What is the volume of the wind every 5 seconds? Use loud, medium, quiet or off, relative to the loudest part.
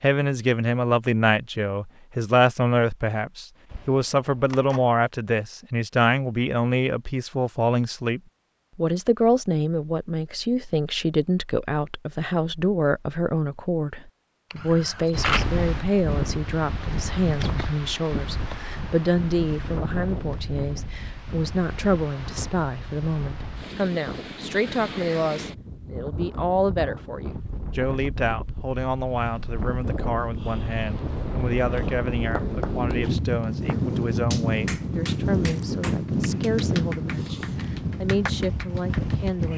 off, off, off, medium, medium, medium, loud, loud.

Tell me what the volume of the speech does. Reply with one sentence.
The loudness of the speech goes down.